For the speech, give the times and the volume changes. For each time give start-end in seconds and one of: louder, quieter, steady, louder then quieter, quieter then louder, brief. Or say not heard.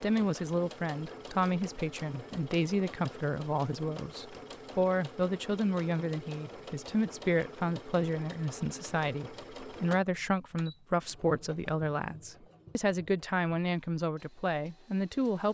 0.0-15.5 steady.